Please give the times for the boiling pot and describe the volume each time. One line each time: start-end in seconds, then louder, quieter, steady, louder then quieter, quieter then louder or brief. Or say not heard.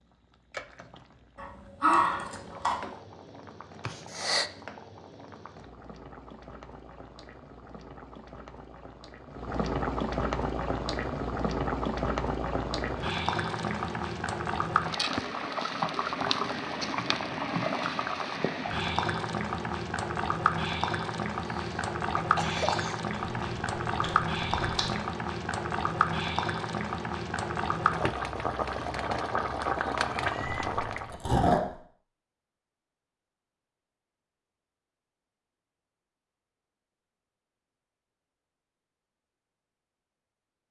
0.0-31.2 louder.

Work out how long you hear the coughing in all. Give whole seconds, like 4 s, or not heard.
2 s.